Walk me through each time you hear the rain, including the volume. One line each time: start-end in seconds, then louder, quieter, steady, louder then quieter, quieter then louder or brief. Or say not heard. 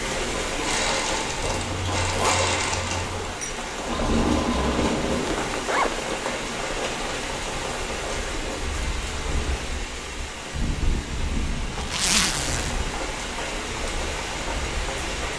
0.0-15.3 steady.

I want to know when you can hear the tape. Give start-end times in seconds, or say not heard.
4.0-5.5.